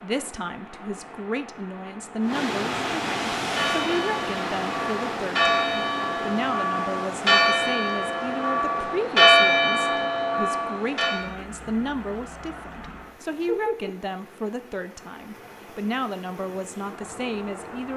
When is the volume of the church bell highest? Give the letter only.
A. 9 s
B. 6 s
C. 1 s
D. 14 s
A.